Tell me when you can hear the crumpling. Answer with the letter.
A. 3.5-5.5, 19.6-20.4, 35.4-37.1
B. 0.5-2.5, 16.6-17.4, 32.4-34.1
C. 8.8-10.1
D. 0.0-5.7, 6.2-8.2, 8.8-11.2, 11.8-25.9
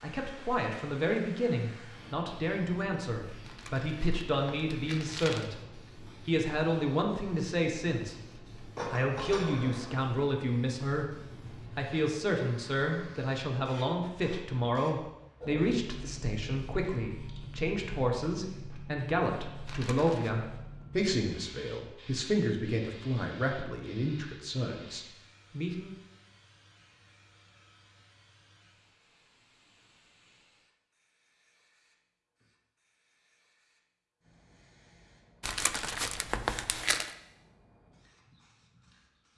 A.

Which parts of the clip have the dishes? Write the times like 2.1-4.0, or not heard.
8.8-10.1.